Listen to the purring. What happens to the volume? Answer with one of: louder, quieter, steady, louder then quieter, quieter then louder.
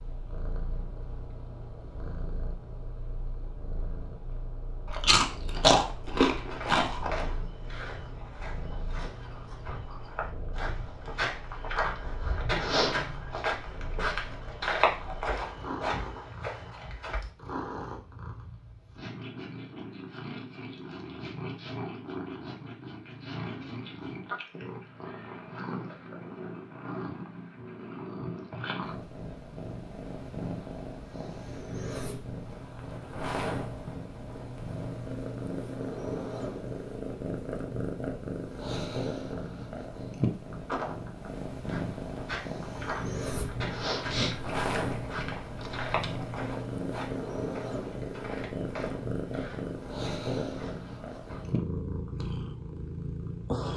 louder.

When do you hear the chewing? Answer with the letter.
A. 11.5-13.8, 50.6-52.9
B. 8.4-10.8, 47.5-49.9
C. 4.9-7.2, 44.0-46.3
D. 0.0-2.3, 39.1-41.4
C.